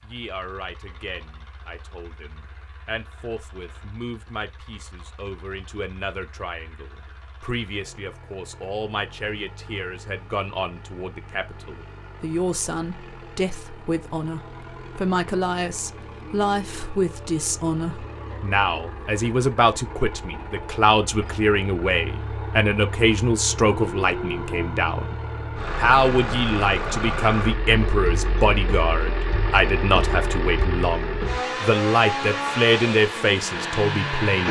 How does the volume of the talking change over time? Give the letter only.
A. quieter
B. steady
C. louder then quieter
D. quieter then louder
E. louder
E.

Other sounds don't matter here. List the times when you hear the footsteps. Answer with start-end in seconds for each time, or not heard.
not heard.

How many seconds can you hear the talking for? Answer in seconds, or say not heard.
34 s.